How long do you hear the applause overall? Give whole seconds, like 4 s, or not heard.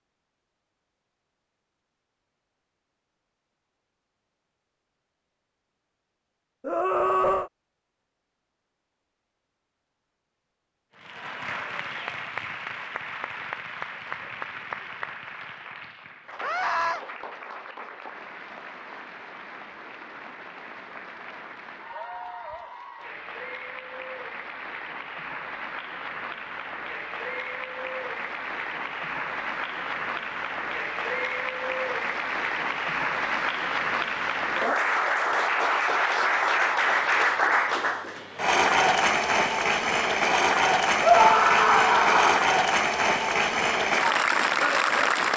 34 s.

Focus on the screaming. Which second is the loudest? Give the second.
41 s.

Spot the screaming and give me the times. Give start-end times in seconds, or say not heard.
6.6-7.5, 16.4-17.0, 41.0-42.4.